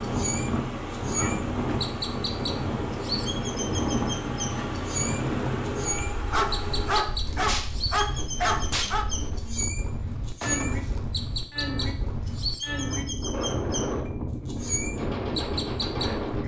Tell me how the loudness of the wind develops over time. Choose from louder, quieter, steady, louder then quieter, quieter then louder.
quieter then louder.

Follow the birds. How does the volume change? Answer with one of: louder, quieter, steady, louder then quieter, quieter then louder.
steady.